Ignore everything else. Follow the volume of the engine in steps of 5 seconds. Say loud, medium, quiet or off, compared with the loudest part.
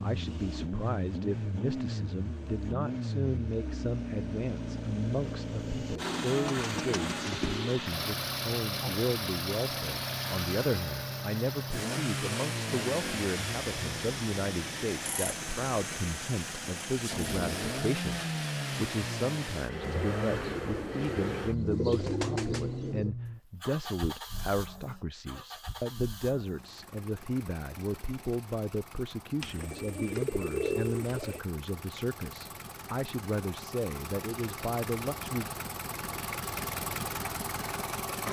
loud, loud, loud, loud, loud, quiet, medium, loud.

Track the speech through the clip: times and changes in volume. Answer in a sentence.
The speech can be heard from 0.0 to 35.5 s, at a steady volume.